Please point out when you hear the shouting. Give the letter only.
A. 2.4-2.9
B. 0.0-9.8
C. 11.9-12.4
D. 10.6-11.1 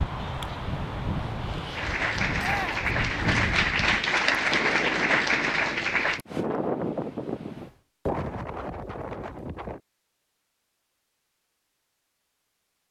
A.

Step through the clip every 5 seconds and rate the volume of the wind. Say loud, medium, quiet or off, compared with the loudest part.
loud, loud, off.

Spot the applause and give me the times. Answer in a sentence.
The applause can be heard from 1.7 to 6.2 s.